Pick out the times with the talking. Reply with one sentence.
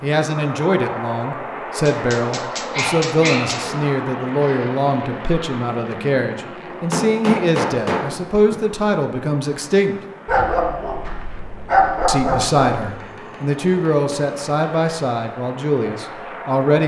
The talking can be heard from 0.0 to 9.9 s and from 12.1 to 16.8 s.